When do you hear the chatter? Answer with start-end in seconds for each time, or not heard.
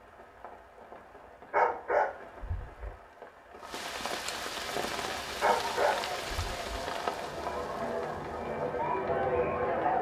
4.6-9.9.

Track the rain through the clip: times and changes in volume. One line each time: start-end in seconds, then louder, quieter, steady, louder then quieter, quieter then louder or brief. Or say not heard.
0.0-9.9 louder then quieter.